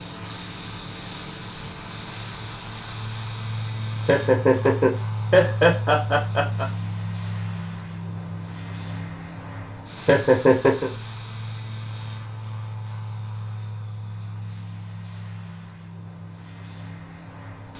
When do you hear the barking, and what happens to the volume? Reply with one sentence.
The barking can't be heard in this clip.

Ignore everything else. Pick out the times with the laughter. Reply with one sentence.
The laughter can be heard from 4.0 to 6.7 s and from 10.1 to 10.9 s.